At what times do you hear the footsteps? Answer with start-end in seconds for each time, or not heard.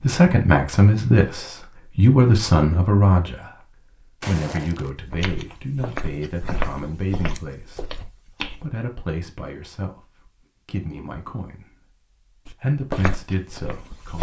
4.2-8.7, 12.4-14.1.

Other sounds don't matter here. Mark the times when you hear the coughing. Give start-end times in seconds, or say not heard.
not heard.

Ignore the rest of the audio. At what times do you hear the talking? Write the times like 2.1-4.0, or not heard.
0.0-7.8, 8.6-11.9, 12.6-14.1.